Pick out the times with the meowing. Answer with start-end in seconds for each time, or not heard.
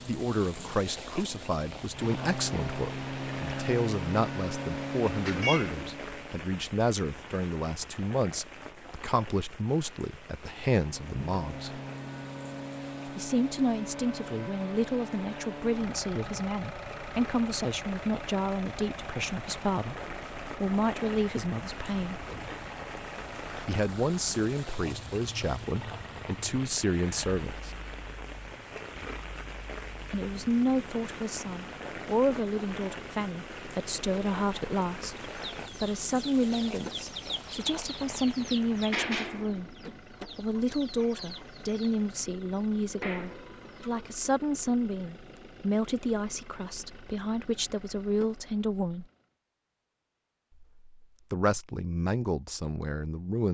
5.2-5.8.